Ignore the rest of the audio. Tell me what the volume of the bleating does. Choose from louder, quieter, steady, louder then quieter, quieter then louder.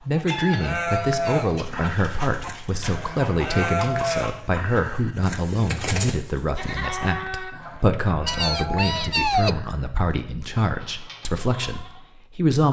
quieter.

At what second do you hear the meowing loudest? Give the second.
9 s.